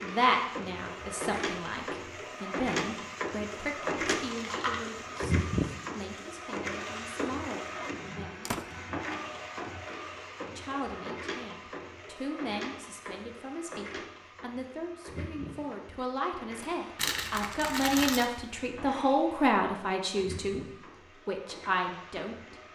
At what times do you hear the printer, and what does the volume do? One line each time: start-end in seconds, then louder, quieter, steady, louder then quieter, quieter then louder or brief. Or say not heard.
0.0-22.7 quieter.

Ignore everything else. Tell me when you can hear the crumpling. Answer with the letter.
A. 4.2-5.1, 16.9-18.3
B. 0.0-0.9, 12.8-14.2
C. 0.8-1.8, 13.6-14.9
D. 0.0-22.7
A.